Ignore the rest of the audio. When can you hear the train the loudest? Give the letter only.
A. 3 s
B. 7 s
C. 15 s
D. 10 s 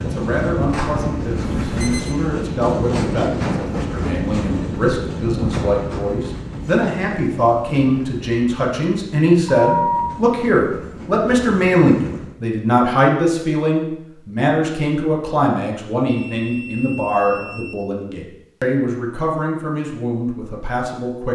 A.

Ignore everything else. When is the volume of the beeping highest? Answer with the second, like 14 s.
10 s.